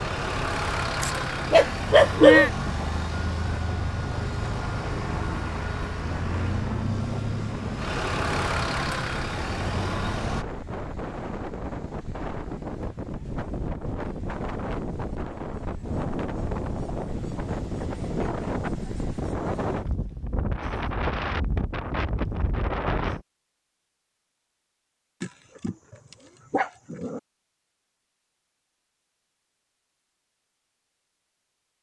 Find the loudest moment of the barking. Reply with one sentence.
The volume of the barking peaks at 2 seconds.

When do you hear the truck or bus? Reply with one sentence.
You can hear the truck or bus from 0.0 to 10.4 s.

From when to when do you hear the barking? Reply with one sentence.
The barking can be heard from 1.0 to 2.5 s and from 25.2 to 27.2 s.